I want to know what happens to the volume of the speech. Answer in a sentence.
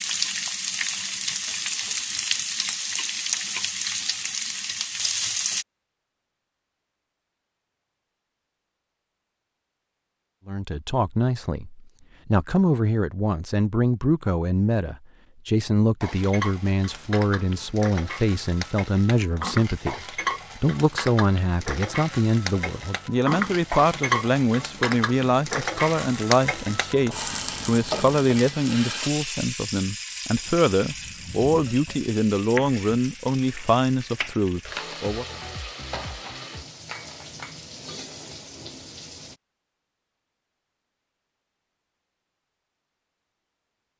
The loudness of the speech stays about the same.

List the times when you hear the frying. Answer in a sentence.
The frying can be heard from 0.0 to 5.7 s and from 16.0 to 39.4 s.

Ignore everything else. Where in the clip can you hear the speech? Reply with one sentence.
The speech can be heard from 10.4 to 35.2 s.